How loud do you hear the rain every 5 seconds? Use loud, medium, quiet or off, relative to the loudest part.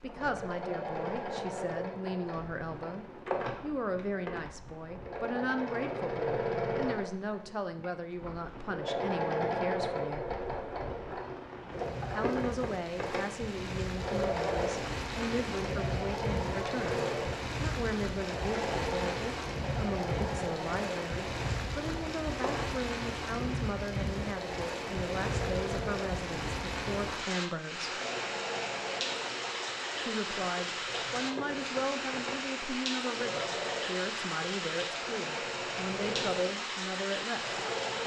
quiet, quiet, medium, loud, loud, loud, loud, loud.